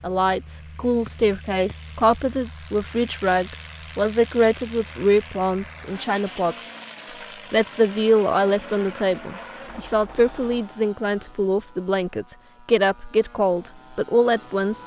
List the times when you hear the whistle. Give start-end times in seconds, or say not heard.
1.1-1.8.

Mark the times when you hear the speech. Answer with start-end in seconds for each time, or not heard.
0.0-6.7, 7.5-14.8.